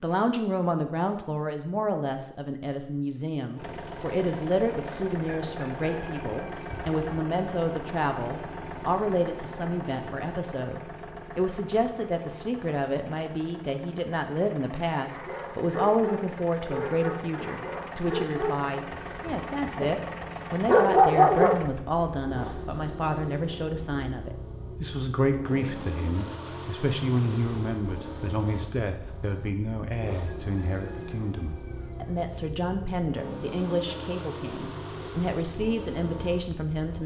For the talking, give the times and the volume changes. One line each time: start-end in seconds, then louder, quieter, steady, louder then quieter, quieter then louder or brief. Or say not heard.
0.0-37.0 steady.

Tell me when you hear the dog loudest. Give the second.
21 s.